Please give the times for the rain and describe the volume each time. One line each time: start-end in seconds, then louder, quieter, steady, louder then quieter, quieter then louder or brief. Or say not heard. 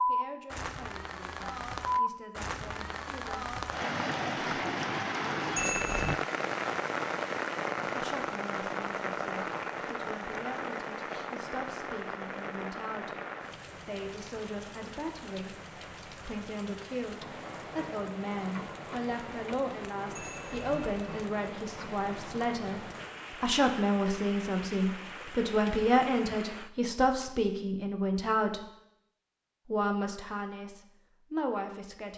0.0-26.7 quieter.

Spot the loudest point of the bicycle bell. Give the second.
6 s.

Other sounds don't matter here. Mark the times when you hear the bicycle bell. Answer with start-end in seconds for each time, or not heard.
5.5-6.2, 20.1-21.2.